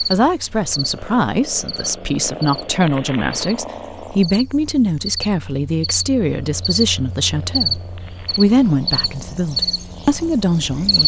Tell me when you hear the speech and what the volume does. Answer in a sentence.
The speech can be heard from 0.0 to 11.0 s, at a steady volume.